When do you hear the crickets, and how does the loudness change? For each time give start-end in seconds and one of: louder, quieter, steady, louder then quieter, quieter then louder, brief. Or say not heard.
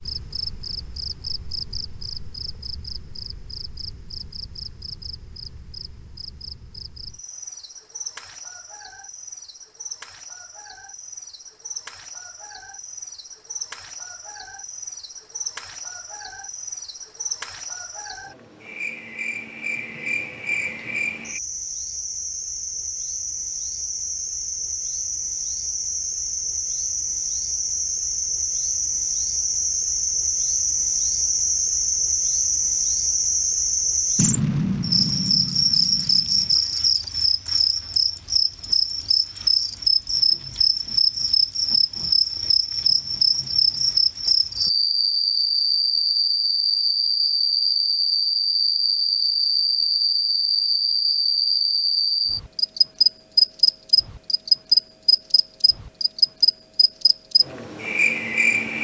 0.0-58.7 louder.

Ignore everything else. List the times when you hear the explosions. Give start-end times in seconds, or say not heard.
34.1-36.5.